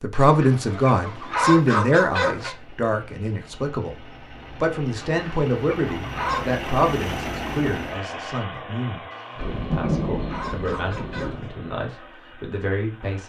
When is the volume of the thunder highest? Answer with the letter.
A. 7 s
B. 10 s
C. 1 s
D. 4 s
B.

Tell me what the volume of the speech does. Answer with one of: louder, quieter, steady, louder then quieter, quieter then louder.
quieter.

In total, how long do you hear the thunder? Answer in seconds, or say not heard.
2 s.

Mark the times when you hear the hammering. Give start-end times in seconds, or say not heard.
not heard.